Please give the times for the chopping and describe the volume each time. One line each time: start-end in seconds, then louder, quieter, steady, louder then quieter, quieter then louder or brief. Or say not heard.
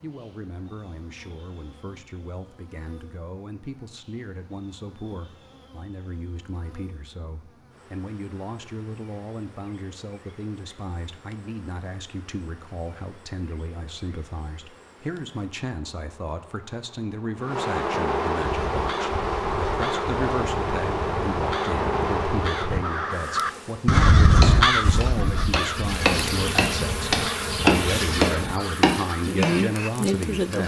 24.4-29.5 louder then quieter.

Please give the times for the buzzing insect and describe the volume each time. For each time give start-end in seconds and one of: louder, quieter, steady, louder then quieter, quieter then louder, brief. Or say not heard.
0.0-30.6 louder.